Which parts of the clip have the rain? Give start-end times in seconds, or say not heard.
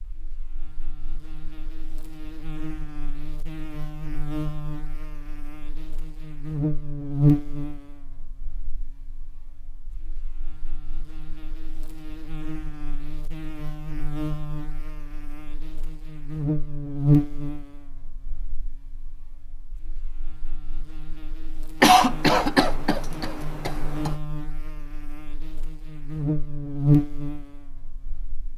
not heard.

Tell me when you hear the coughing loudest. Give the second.
22 s.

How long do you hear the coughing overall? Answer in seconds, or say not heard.
2 s.